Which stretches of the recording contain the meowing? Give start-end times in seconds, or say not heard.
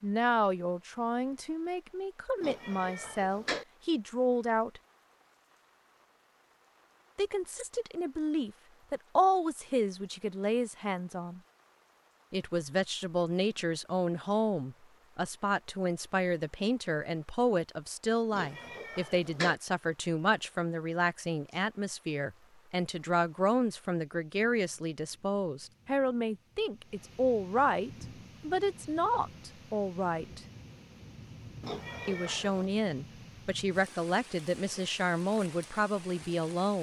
2.4-3.6, 18.3-19.6, 31.6-32.7.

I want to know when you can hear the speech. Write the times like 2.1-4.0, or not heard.
0.0-4.8, 7.2-11.4, 12.3-30.4, 32.0-36.7.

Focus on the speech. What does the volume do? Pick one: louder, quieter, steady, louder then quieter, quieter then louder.
steady.